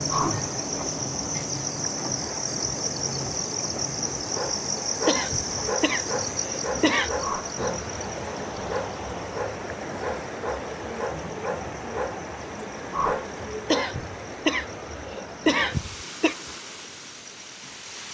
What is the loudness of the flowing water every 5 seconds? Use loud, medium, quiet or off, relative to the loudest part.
loud, loud, loud, medium.